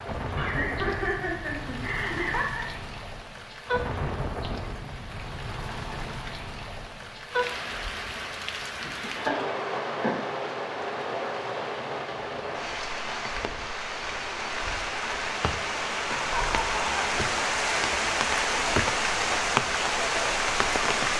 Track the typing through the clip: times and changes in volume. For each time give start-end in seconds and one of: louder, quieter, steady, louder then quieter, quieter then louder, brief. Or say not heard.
not heard.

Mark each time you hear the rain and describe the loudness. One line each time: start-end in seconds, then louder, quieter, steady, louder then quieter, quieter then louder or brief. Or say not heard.
0.0-21.1 louder.